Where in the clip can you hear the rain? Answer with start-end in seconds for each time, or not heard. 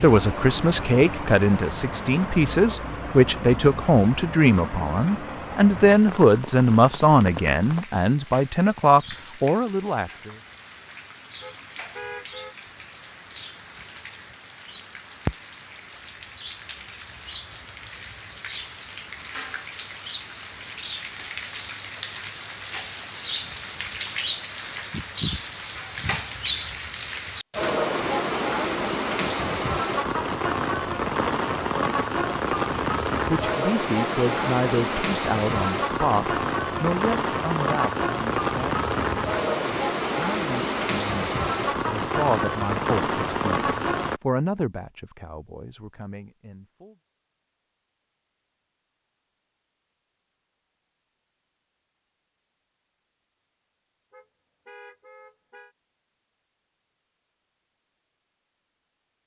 0.0-44.2.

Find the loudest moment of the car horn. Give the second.
12 s.